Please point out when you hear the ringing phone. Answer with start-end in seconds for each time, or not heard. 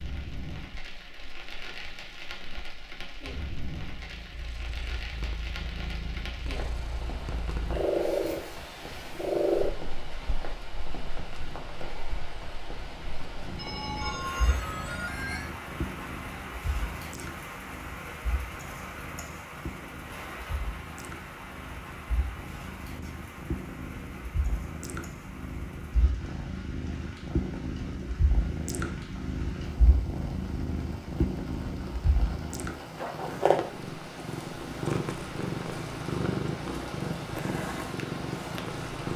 13.6-15.5.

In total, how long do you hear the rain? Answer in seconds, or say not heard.
39 s.